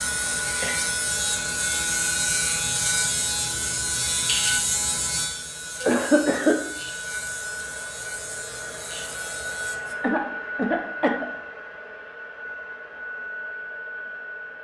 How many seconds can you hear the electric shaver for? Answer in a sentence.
You can hear the electric shaver for 10 seconds altogether.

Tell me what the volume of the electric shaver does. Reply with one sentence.
The volume of the electric shaver goes down.